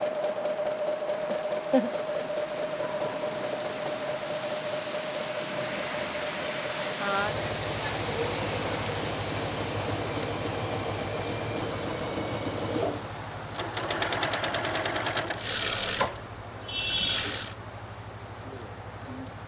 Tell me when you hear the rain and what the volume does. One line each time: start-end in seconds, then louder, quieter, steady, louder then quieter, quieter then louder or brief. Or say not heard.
0.0-19.4 louder then quieter.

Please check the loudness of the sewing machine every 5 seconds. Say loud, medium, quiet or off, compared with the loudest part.
loud, medium, loud, loud.